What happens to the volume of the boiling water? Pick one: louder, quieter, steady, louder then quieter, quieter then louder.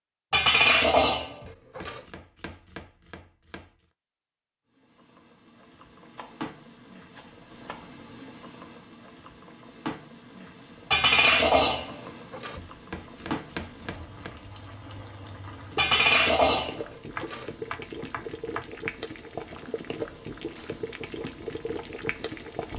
louder.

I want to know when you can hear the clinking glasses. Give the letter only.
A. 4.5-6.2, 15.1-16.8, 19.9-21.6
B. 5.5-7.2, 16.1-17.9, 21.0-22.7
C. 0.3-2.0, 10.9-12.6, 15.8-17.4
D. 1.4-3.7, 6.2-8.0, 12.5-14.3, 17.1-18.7
C.